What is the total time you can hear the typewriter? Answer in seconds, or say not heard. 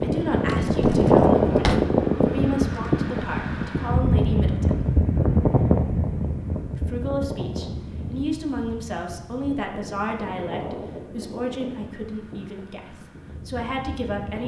not heard.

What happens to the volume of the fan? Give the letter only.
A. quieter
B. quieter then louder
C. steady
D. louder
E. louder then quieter
A.